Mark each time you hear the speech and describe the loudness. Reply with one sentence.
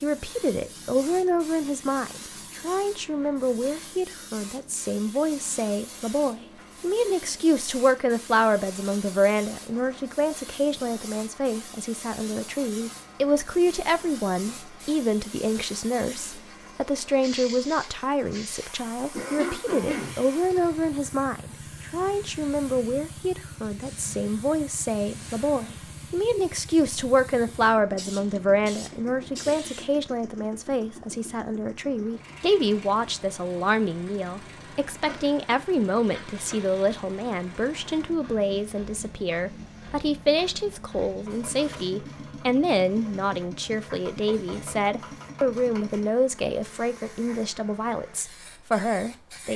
The speech can be heard from 0.0 to 49.5 s, at a steady volume.